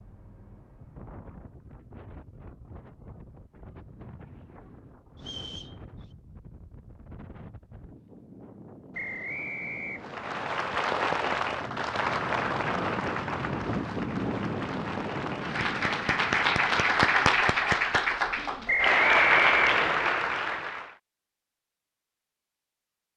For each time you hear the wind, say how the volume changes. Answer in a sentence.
You can hear the wind from 0.0 to 17.3 s, getting louder.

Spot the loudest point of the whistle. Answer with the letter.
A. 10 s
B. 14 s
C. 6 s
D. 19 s
D.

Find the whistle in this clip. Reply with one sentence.
The whistle can be heard from 5.2 to 6.0 s, from 8.9 to 10.2 s and from 18.6 to 19.9 s.